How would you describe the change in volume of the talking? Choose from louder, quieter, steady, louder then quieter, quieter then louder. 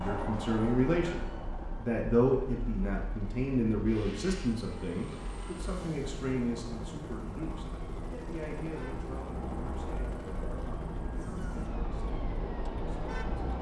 quieter.